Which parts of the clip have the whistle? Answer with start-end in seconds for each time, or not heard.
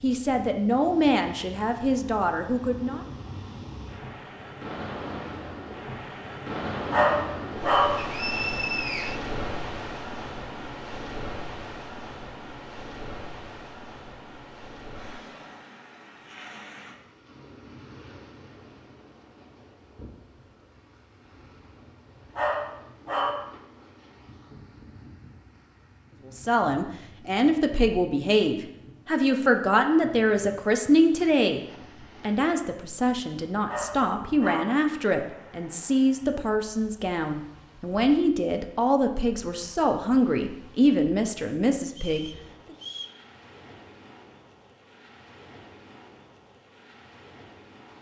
8.0-9.2, 41.9-43.2.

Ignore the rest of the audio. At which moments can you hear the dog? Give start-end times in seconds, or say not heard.
6.9-8.1, 22.4-23.4, 33.6-34.8.